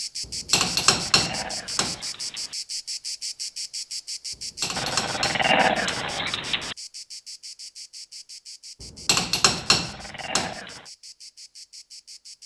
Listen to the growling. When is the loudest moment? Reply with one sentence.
The volume of the growling peaks at 6 seconds.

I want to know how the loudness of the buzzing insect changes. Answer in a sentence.
The volume of the buzzing insect goes down.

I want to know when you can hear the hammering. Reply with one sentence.
The hammering can be heard from 0.2 to 2.0 s, from 4.6 to 6.1 s and from 8.8 to 10.6 s.